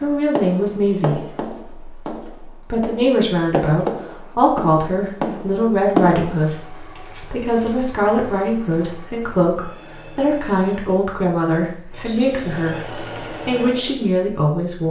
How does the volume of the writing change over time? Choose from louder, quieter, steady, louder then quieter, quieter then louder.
quieter then louder.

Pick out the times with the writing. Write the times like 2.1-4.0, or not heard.
0.0-6.5.